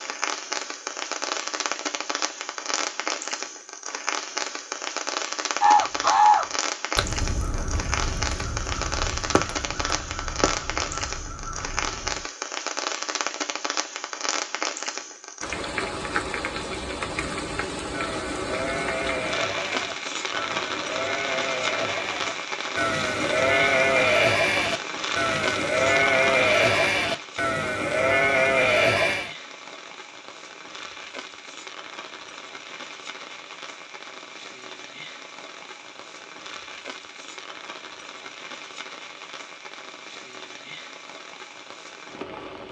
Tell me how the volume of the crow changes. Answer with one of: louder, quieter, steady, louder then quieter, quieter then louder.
quieter.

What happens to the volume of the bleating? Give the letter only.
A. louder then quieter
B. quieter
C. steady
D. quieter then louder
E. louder
E.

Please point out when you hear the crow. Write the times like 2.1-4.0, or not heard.
5.6-12.2.